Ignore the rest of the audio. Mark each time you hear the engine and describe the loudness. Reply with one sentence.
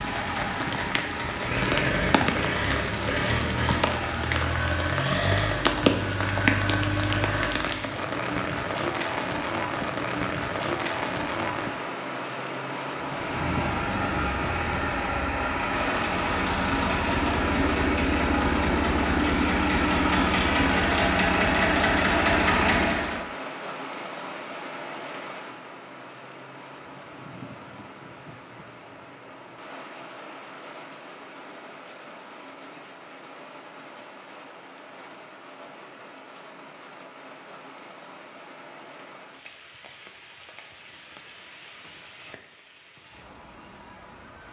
You can hear the engine from 0.0 to 8.0 s, at a steady volume; and from 12.9 to 23.2 s, getting louder.